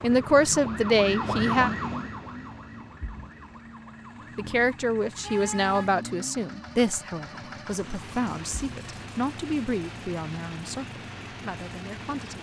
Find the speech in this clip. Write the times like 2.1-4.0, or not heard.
0.0-1.7, 4.3-12.3.